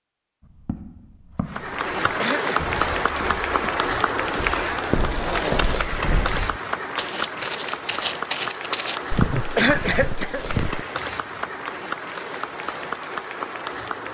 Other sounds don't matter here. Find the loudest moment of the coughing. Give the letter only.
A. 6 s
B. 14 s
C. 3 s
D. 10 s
D.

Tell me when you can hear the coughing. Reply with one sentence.
You can hear the coughing from 2.1 to 2.6 s and from 9.6 to 10.4 s.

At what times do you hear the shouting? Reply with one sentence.
The shouting can't be heard in this clip.